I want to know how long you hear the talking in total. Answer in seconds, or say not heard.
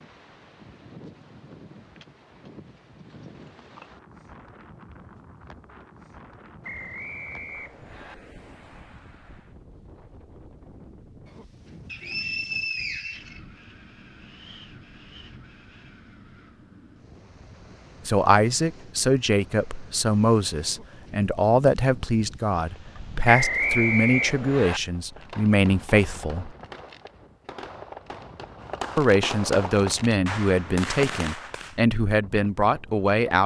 13 s.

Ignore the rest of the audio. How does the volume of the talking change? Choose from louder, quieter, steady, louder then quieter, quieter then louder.
steady.